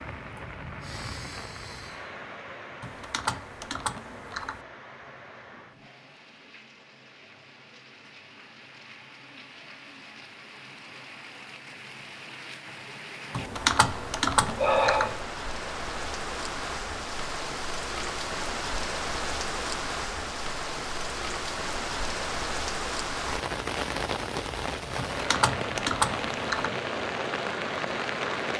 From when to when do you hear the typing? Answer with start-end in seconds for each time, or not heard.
2.8-4.6, 13.3-15.2, 24.9-26.7.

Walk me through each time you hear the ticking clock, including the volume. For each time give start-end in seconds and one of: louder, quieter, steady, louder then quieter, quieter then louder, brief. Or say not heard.
not heard.